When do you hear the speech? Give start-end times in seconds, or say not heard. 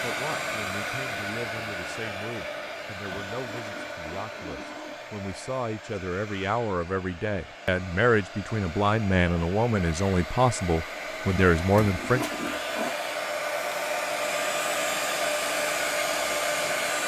0.0-12.2.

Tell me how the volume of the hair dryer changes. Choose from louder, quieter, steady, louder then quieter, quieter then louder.
quieter then louder.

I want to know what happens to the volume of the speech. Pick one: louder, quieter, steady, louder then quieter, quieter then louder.
louder.